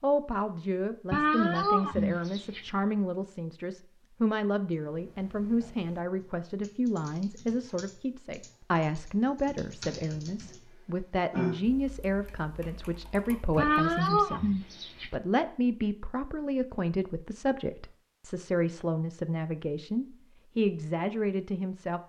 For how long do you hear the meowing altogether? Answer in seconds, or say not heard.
3 s.